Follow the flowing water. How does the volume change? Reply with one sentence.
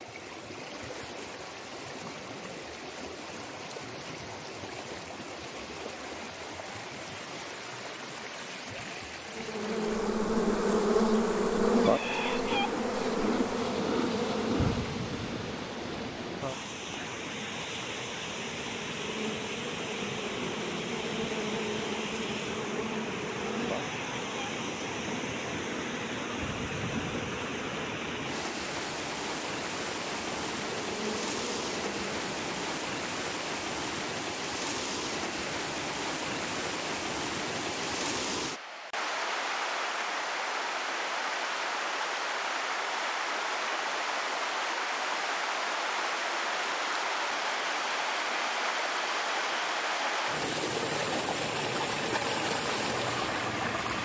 The loudness of the flowing water goes up.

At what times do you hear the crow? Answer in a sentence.
The crow can't be heard in this clip.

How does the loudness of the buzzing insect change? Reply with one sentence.
The volume of the buzzing insect goes down.